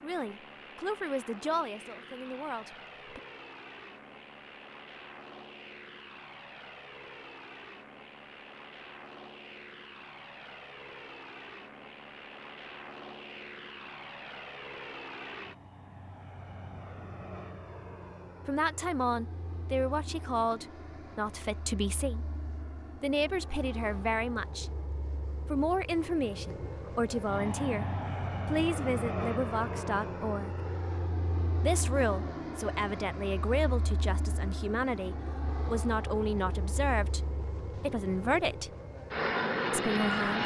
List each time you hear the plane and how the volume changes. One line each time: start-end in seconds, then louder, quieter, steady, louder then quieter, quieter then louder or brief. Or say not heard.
0.0-40.4 louder.